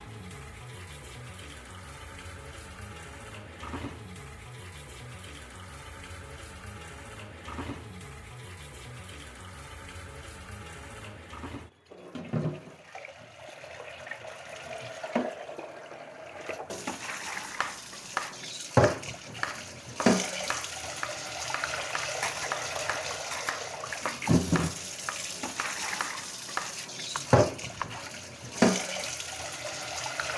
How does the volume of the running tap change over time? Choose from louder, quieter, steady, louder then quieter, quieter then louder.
louder.